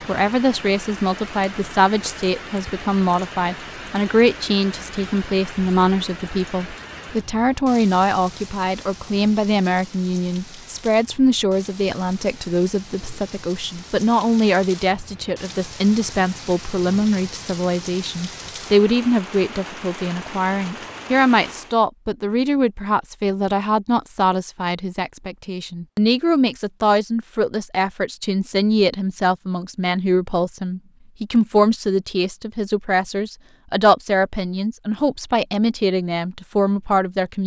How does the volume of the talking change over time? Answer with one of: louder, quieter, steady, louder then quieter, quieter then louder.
steady.